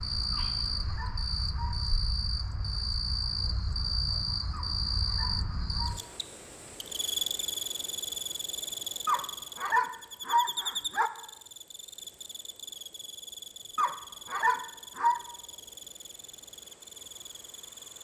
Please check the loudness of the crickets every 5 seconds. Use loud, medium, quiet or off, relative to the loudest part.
loud, loud, medium, quiet.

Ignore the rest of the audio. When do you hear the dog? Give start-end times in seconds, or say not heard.
0.3-1.8, 4.5-6.2, 9.1-11.1, 13.8-15.2.